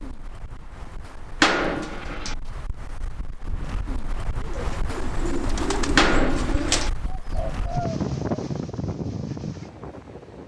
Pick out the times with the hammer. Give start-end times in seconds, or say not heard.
1.4-2.4, 6.0-6.9.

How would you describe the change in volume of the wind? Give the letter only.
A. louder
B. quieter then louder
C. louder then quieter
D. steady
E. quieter
A.